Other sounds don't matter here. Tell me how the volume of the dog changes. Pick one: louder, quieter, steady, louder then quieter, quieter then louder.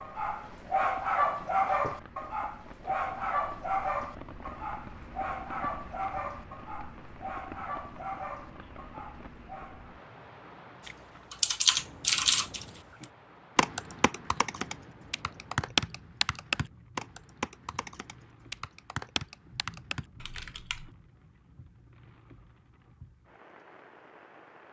quieter.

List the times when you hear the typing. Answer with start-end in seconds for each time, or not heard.
10.8-20.9.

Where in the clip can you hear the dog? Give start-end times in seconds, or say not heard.
0.0-9.9.